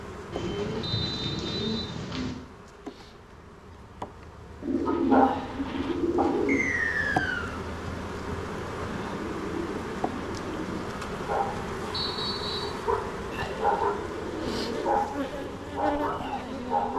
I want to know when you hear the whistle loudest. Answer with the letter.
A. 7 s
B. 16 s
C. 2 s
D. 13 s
A.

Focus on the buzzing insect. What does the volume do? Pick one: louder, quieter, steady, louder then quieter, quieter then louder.
louder.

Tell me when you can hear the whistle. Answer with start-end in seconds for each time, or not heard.
0.8-1.9, 6.5-7.6, 11.9-12.8.